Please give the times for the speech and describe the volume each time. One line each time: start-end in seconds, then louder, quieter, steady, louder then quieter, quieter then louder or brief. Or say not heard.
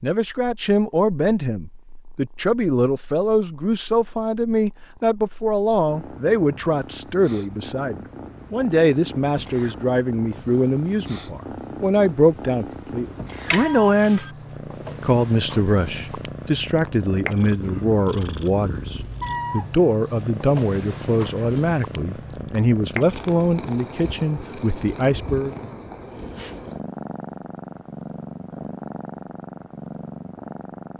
0.0-14.2 steady
15.0-25.6 steady.